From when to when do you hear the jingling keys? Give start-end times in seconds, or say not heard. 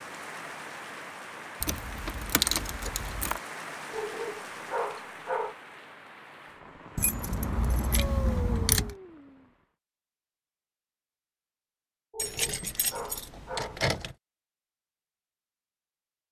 1.6-3.4, 7.0-8.9, 12.2-14.2.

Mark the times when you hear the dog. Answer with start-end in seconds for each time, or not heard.
3.9-5.5, 12.1-13.8.